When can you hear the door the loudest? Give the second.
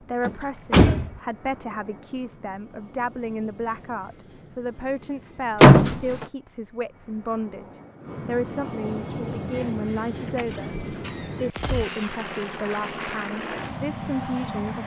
6 s.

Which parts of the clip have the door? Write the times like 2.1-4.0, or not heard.
0.2-1.1, 5.6-6.2, 10.2-12.1.